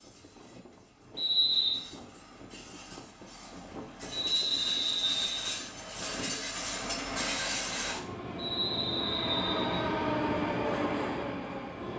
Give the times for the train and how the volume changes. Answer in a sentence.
You can hear the train from 0.0 to 11.9 s, getting louder.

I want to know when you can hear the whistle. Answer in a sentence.
You can hear the whistle from 1.1 to 1.8 s, from 4.1 to 5.5 s and from 8.3 to 9.8 s.